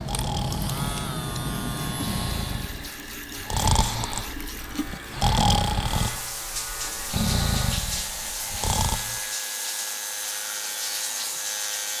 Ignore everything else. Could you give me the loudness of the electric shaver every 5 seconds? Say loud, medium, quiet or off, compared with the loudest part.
loud, medium, loud.